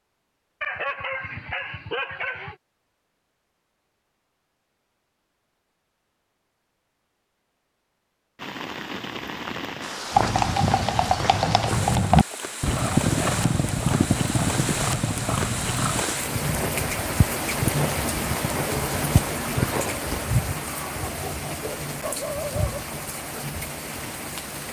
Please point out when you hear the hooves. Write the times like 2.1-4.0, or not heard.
10.1-20.2.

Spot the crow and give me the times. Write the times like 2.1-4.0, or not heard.
not heard.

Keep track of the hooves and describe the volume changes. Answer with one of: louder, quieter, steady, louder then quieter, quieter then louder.
quieter.